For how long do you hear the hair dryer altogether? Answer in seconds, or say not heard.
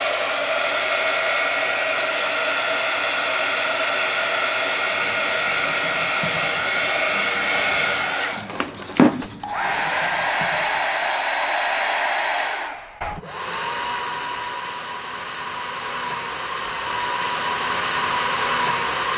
19 s.